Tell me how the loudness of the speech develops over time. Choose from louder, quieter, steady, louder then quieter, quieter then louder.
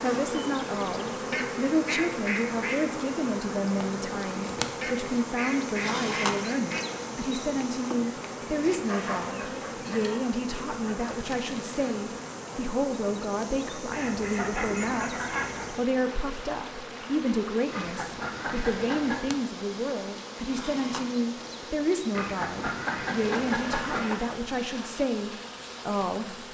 steady.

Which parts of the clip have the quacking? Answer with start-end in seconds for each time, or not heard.
1.3-2.8, 4.8-6.8, 8.8-11.2, 13.9-15.8, 17.7-19.2, 22.1-24.3.